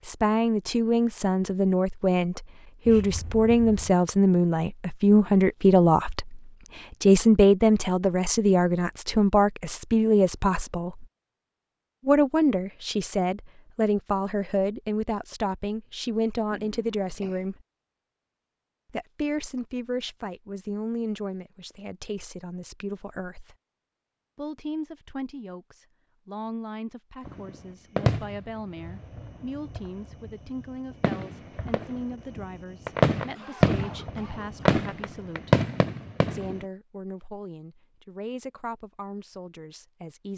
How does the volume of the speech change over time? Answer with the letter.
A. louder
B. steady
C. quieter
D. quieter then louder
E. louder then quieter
C.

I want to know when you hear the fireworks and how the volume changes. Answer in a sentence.
You can hear the fireworks from 27.2 to 36.6 s, getting quieter then louder.